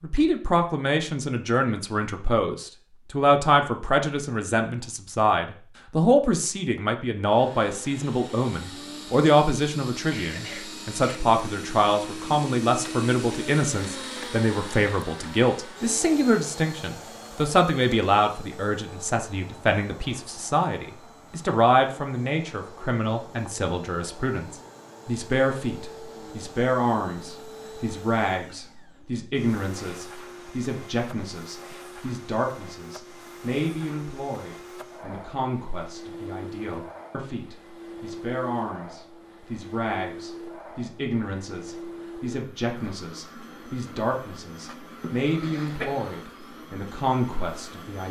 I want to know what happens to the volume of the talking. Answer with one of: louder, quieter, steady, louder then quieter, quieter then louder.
quieter.